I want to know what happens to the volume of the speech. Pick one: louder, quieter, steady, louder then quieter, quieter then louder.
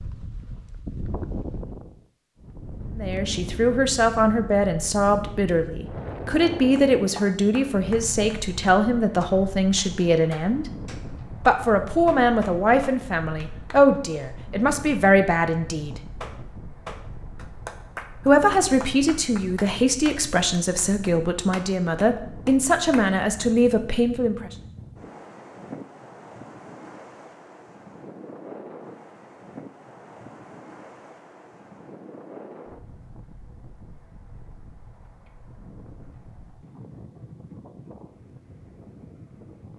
steady.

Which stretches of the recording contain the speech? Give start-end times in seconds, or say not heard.
3.0-10.7, 11.4-16.0, 18.2-24.5.